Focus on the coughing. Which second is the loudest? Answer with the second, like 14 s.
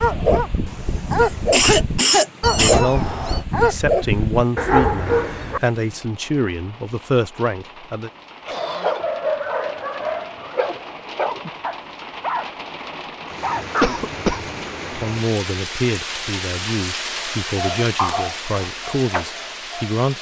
2 s.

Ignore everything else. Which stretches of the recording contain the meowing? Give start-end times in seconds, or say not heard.
2.4-3.5.